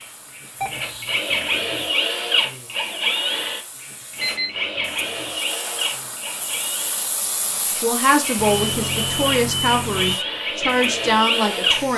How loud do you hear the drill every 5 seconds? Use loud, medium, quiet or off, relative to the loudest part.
loud, medium, loud.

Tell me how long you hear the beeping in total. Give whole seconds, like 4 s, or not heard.
3 s.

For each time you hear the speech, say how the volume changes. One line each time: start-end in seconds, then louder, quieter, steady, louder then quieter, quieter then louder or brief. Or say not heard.
7.8-11.9 steady.